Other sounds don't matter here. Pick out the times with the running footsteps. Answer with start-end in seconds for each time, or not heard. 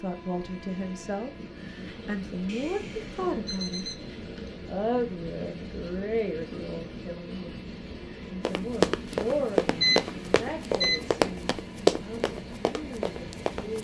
8.4-13.7.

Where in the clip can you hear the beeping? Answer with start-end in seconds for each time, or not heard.
2.5-4.5, 9.1-11.1.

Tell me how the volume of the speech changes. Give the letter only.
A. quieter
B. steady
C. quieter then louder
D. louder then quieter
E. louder
A.